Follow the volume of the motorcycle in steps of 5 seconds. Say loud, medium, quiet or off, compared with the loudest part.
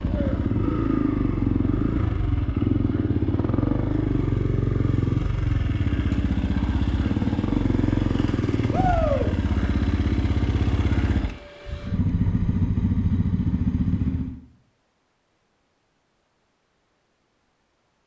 loud, loud, loud, off.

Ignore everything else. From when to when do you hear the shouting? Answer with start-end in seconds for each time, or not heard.
8.7-9.3.